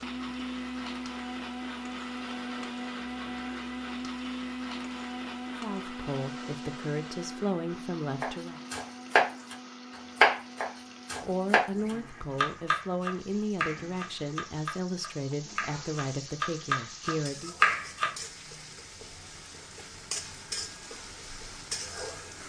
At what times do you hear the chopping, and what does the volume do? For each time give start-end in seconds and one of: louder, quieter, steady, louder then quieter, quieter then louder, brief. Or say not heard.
8.2-9.6 brief
10.2-18.1 quieter then louder.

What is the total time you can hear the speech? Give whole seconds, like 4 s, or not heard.
9 s.